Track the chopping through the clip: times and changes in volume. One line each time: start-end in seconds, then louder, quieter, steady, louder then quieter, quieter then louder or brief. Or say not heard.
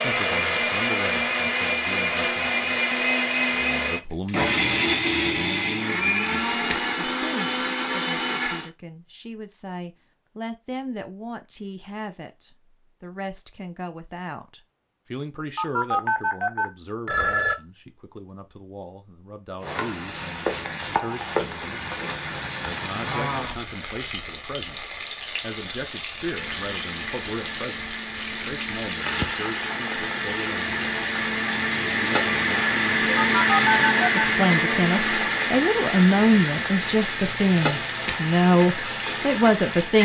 not heard.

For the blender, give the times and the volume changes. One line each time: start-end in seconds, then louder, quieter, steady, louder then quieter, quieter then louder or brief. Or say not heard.
0.0-8.7 steady
26.2-40.0 louder then quieter.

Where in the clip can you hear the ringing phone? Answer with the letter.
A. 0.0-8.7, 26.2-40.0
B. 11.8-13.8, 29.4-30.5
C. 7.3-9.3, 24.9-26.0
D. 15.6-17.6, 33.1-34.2
D.